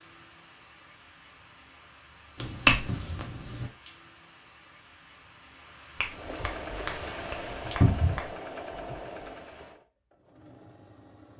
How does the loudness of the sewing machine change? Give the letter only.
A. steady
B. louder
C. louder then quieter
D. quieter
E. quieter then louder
D.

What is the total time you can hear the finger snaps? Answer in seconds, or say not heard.
4 s.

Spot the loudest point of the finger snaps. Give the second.
3 s.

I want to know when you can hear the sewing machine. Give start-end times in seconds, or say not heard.
6.0-11.3.